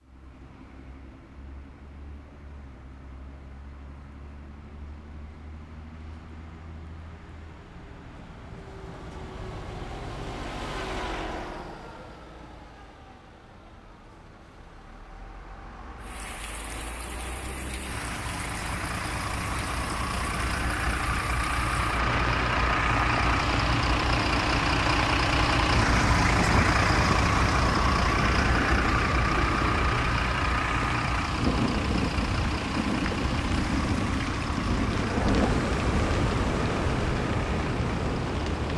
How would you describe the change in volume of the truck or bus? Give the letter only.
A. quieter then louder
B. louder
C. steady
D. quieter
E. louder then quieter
E.